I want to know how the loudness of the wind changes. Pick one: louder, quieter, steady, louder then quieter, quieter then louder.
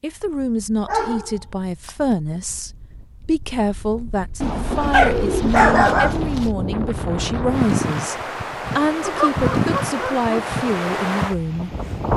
louder.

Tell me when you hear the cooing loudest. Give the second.
5 s.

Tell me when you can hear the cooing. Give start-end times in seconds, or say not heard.
4.4-6.5.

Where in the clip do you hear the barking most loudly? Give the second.
6 s.